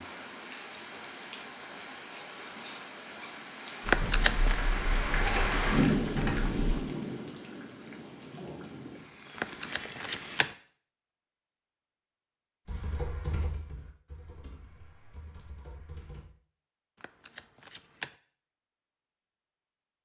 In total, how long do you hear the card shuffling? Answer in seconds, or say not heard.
3 s.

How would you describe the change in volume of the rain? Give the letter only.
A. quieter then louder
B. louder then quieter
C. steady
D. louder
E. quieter
B.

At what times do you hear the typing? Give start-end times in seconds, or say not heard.
3.8-6.8, 12.7-16.2.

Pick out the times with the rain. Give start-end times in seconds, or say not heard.
0.0-10.6.